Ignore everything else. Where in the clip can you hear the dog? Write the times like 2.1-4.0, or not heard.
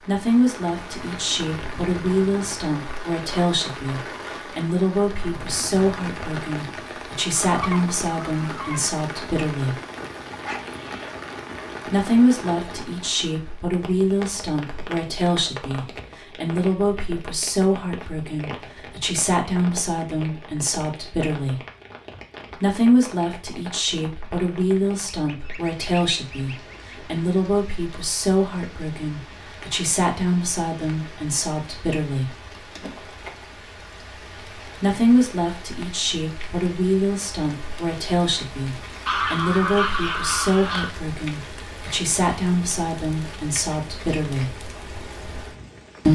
10.4-11.1.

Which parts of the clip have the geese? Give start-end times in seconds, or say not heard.
7.3-8.9, 25.2-27.2, 39.0-41.0.